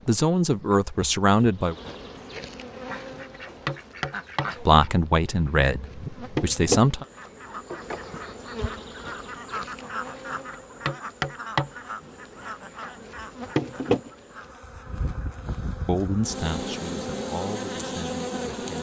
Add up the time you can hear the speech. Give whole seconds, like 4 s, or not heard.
7 s.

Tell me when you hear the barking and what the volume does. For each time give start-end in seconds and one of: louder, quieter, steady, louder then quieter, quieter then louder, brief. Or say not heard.
not heard.